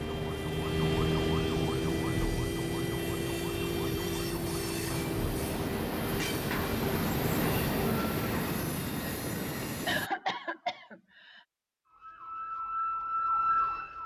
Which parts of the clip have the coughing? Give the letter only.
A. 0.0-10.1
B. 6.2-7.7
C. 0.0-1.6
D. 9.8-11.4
D.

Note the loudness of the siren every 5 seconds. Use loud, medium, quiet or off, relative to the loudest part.
loud, medium, loud.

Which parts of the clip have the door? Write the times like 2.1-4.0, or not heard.
not heard.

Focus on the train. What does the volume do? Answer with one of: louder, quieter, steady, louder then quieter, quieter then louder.
louder.